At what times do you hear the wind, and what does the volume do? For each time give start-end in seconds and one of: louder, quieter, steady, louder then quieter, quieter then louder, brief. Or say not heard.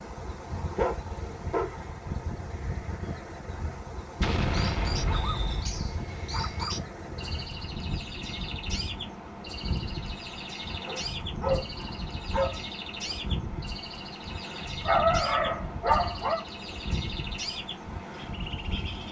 0.0-19.0 steady.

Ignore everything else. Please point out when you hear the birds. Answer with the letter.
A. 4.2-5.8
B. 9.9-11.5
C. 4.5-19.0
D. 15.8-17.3
C.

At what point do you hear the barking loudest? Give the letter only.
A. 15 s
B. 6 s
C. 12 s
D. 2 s
A.